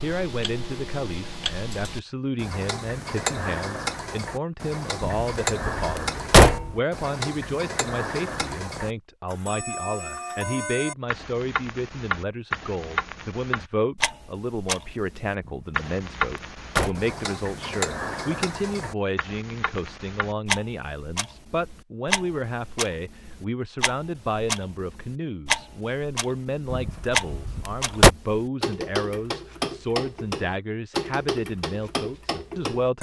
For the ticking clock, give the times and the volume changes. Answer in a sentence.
You can hear the ticking clock from 0.0 to 32.9 s, at a steady volume.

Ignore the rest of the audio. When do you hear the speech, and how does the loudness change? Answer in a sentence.
The speech can be heard from 0.0 to 32.9 s, at a steady volume.